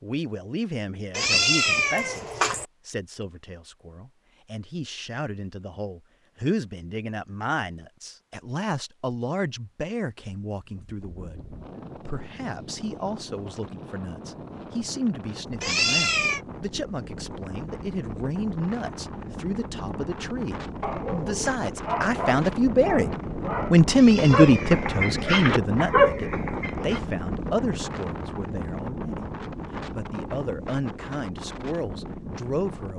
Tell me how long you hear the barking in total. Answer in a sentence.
The barking can be heard for 6 seconds in total.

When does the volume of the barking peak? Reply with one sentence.
The loudest moment of the barking is at 26 seconds.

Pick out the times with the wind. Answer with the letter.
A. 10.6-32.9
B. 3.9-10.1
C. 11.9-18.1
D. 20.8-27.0
A.